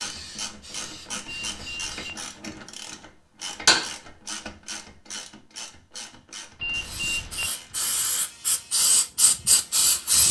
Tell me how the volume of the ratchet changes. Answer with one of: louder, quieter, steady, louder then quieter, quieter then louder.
louder then quieter.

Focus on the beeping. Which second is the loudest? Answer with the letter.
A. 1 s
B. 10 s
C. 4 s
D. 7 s
D.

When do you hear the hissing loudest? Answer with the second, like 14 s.
10 s.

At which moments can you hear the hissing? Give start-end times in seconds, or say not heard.
0.0-2.4, 6.8-10.2.